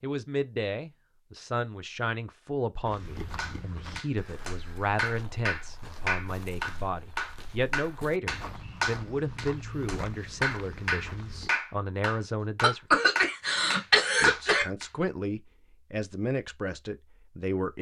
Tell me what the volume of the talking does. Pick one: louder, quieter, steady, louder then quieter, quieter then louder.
steady.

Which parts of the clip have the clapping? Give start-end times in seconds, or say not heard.
3.4-14.9.